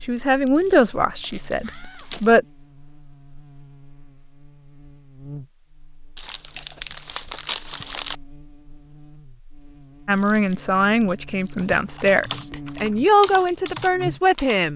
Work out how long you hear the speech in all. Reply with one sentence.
You can hear the speech for 7 seconds altogether.